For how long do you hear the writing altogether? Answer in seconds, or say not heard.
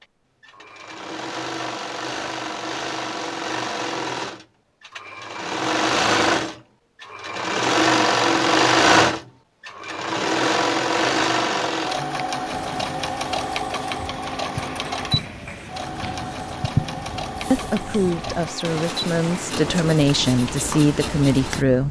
9 s.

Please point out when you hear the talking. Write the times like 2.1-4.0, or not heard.
17.5-21.8.